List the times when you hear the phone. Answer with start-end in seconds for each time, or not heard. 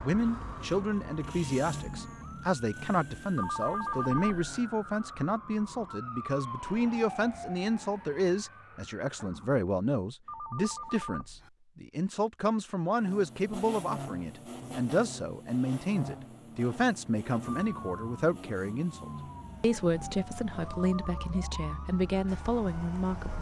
3.4-4.6, 10.2-11.5, 20.7-21.4.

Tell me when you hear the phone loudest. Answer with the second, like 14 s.
4 s.